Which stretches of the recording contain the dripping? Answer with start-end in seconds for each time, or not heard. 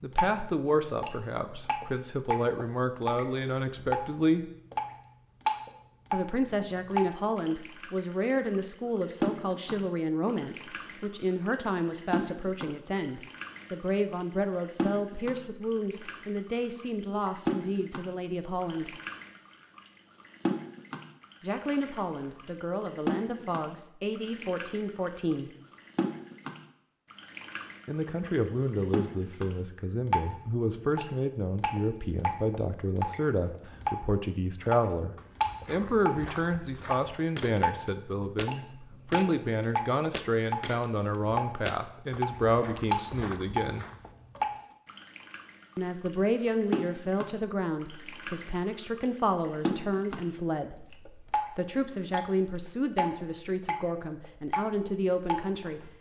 0.0-50.2, 50.9-52.3, 53.0-55.9.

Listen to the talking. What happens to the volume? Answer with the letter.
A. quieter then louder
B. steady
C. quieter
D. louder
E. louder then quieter
B.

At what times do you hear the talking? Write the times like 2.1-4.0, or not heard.
0.0-4.5, 6.1-18.9, 21.4-25.5, 27.9-43.9, 45.8-55.9.